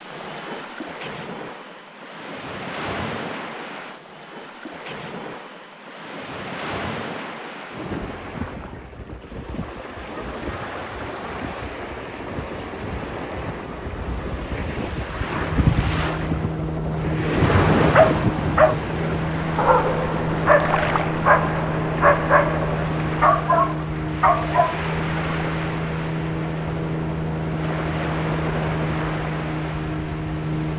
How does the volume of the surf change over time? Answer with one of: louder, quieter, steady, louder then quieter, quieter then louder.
louder then quieter.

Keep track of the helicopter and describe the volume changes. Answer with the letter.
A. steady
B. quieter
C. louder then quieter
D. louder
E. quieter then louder
A.